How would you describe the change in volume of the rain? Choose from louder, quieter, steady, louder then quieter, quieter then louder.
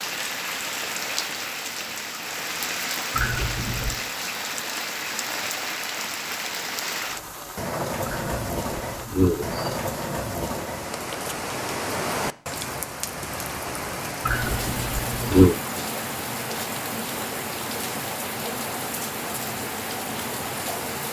steady.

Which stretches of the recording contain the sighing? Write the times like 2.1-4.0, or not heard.
3.1-4.0, 8.1-9.8, 14.2-15.6.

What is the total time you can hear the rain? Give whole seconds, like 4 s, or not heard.
21 s.